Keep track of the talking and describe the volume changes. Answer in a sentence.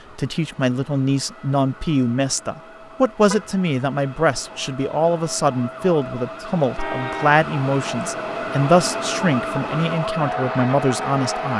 The volume of the talking stays about the same.